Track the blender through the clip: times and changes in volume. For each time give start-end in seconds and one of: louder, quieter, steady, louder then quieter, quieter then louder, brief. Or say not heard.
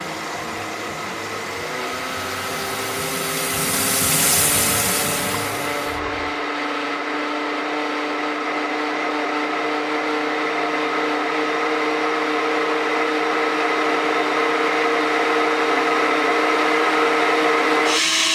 0.0-18.3 louder.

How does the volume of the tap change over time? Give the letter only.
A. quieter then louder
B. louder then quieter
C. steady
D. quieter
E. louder
B.